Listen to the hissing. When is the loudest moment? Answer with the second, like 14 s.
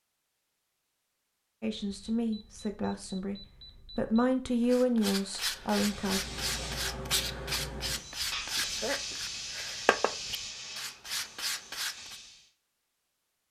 9 s.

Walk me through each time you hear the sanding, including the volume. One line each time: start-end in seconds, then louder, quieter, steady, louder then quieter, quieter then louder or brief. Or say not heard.
4.6-12.2 steady.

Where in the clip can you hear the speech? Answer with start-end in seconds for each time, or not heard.
1.6-6.2.